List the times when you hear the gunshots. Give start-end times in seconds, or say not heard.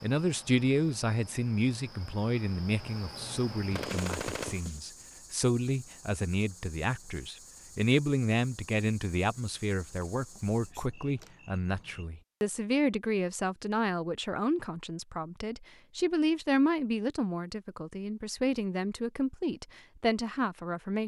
3.7-4.8.